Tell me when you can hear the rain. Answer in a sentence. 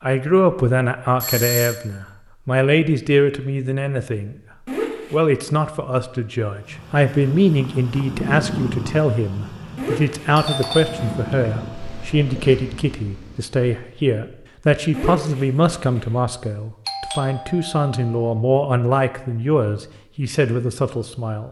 You can't hear the rain here.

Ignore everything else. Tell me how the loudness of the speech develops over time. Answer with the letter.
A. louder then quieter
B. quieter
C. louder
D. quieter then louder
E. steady
E.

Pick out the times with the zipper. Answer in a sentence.
The zipper can be heard from 4.7 to 5.2 s, from 9.8 to 11.2 s and from 14.9 to 16.1 s.